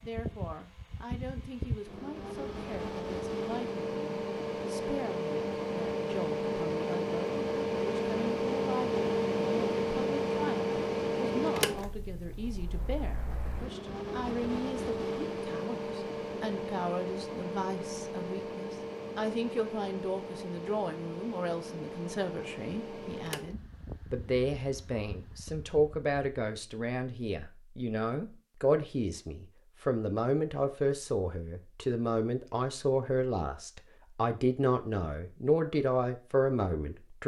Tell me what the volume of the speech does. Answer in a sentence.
The volume of the speech goes up.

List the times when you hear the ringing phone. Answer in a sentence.
You can't hear the ringing phone here.